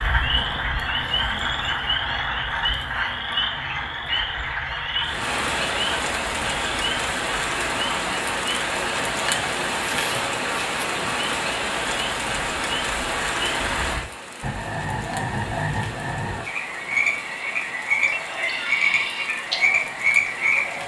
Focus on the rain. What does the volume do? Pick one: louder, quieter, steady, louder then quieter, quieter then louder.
quieter.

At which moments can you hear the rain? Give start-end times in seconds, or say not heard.
5.0-20.8.